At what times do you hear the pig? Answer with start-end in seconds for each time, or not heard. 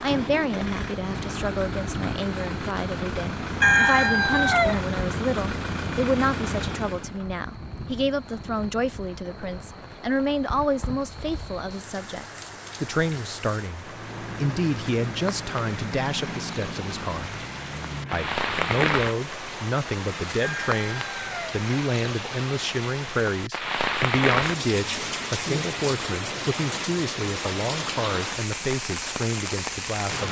not heard.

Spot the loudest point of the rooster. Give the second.
4 s.